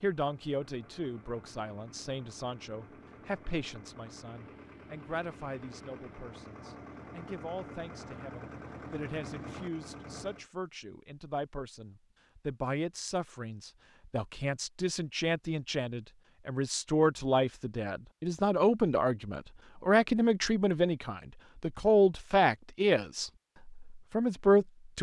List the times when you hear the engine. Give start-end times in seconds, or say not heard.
0.1-10.4.